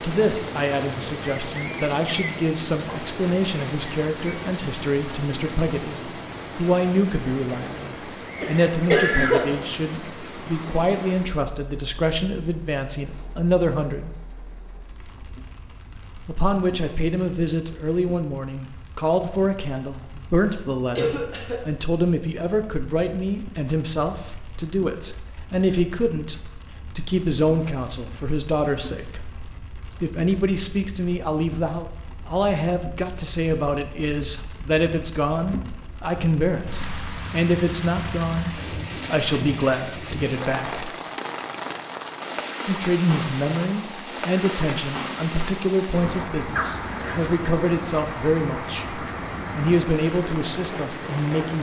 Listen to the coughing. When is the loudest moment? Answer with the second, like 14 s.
9 s.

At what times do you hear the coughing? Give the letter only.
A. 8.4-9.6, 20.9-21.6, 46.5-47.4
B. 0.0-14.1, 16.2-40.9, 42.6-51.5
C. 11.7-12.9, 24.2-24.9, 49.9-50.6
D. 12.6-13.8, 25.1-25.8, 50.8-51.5
A.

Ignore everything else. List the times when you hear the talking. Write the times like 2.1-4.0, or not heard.
0.0-14.1, 16.2-40.9, 42.6-51.5.